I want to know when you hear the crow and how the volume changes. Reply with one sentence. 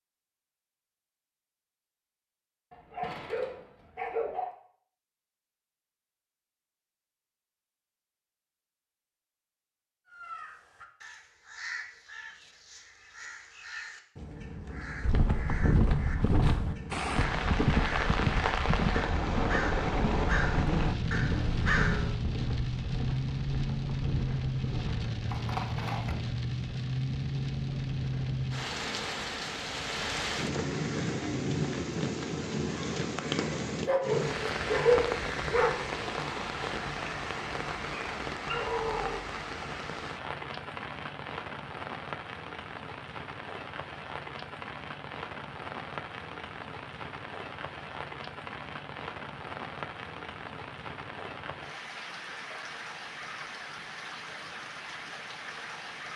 The crow can be heard from 10.1 to 22.2 s, getting louder.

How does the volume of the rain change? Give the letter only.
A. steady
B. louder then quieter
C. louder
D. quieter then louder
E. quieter
E.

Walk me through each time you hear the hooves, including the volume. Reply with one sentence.
The hooves can be heard from 15.0 to 26.1 s, getting quieter.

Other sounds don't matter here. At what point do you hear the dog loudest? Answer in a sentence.
The volume of the dog peaks at 35 seconds.